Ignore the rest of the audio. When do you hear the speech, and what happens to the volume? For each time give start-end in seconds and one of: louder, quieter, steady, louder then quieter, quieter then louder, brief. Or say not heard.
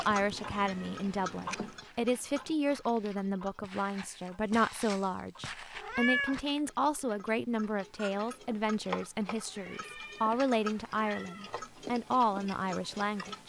0.0-13.4 steady.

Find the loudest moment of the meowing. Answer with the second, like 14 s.
6 s.